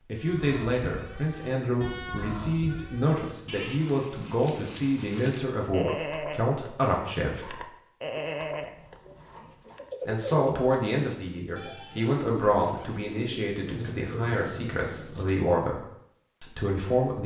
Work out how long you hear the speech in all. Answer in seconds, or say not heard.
14 s.